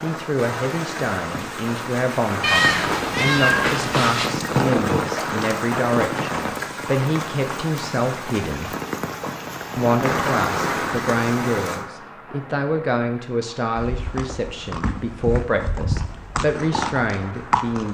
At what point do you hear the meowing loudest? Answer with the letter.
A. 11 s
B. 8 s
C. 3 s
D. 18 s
C.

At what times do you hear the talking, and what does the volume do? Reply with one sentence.
The talking can be heard from 0.0 to 8.8 s, at a steady volume; and from 9.8 to 17.9 s, at a steady volume.